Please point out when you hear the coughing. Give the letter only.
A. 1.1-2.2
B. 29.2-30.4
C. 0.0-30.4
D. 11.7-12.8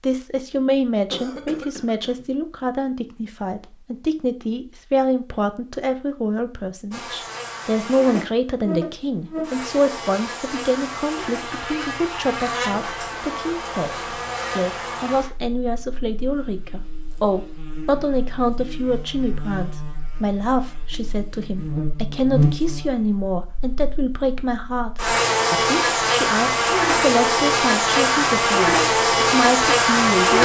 A.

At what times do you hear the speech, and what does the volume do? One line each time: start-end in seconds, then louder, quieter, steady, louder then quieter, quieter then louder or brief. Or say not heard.
0.0-30.4 steady.